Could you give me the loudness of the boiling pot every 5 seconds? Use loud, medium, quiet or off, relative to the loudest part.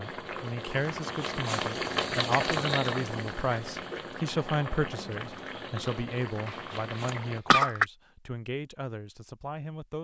loud, medium.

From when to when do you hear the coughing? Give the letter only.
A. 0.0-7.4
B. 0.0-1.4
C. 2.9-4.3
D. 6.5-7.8
D.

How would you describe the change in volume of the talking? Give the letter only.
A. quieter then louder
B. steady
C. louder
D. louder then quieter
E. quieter
E.